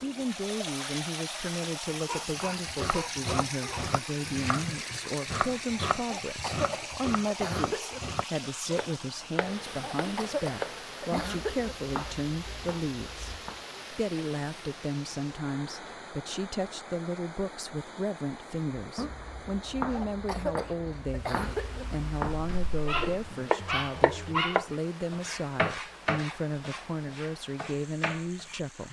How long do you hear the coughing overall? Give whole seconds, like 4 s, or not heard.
6 s.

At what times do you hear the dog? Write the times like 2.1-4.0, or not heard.
1.9-3.9, 22.3-24.8.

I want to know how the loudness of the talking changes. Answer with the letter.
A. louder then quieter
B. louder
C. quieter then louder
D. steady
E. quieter
D.